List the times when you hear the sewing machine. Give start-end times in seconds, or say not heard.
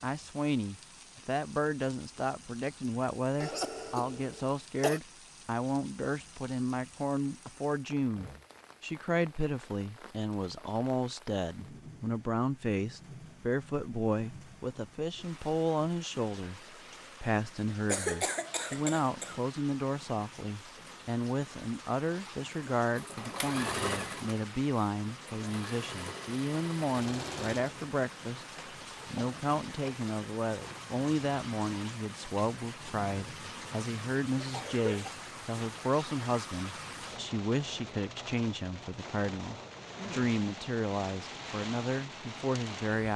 22.9-29.9.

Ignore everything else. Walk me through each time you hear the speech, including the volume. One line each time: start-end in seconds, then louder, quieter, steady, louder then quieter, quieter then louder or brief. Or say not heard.
0.0-16.6 steady
17.2-28.4 steady
29.1-43.1 steady.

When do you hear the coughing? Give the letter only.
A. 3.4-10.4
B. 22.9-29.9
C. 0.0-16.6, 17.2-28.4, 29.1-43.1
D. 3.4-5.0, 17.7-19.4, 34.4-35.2
D.